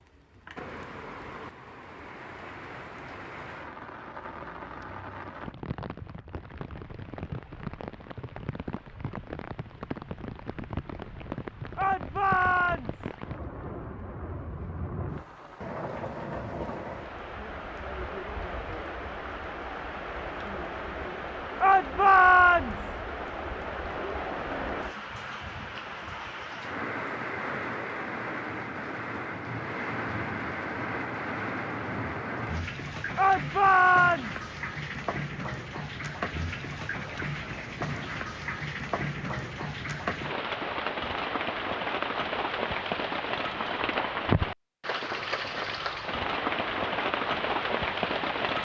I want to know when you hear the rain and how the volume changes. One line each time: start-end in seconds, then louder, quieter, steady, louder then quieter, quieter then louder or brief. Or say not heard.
0.0-48.5 louder.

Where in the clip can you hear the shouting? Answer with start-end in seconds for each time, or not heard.
11.8-13.1, 21.6-22.9, 33.1-34.4.